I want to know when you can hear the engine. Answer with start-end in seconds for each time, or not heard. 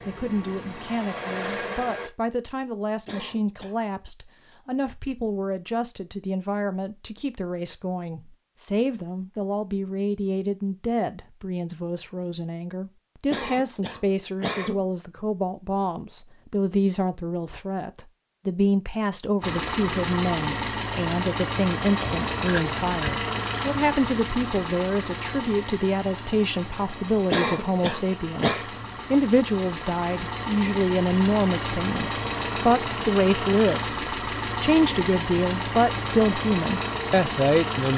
0.0-2.1, 19.4-37.9.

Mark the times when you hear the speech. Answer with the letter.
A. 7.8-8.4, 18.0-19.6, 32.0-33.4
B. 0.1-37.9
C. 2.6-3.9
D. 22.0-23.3
B.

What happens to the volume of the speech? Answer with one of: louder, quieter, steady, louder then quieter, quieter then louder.
louder.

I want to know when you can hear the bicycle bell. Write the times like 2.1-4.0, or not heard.
22.0-23.3.